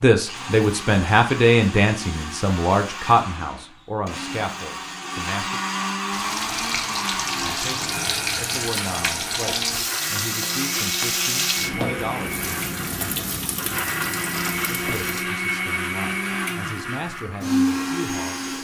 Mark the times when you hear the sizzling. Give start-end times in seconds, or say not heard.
6.1-15.2.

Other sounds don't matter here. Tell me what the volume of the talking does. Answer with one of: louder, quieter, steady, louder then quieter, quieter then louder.
quieter.